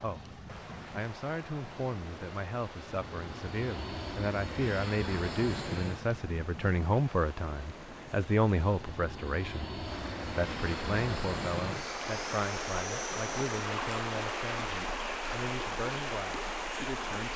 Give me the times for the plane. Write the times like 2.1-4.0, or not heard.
0.0-17.3.